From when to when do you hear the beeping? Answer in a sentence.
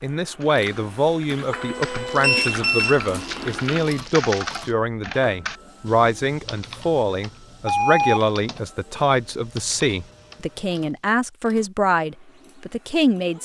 The beeping can be heard from 2.2 to 3.6 s and from 7.2 to 8.2 s.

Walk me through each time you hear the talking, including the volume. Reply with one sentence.
You can hear the talking from 0.0 to 13.4 s, at a steady volume.